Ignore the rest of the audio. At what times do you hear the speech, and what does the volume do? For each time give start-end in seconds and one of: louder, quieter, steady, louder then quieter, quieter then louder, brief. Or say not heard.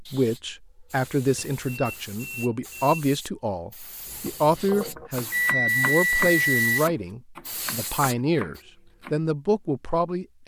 0.0-10.4 steady.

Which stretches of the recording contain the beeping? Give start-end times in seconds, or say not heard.
1.4-3.0, 5.3-6.9.